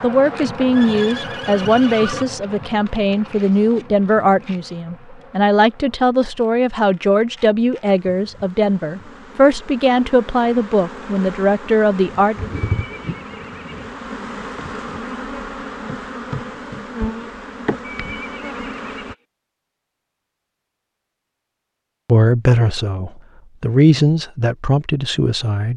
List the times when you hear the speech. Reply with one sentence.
The speech can be heard from 0.0 to 12.5 s and from 22.1 to 25.7 s.